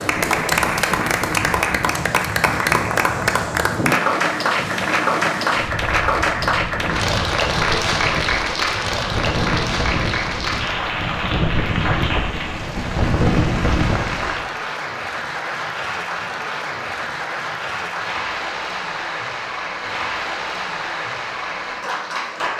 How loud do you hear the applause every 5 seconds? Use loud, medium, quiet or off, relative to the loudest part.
loud, loud, medium, medium, medium.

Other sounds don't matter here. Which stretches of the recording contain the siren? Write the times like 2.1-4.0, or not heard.
not heard.